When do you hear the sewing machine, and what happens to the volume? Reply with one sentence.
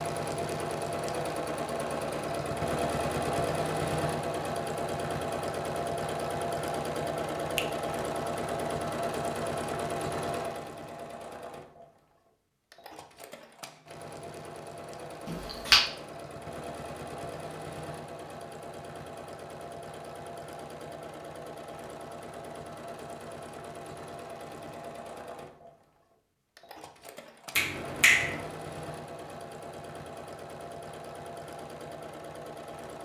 You can hear the sewing machine from 0.0 to 33.0 s, getting quieter.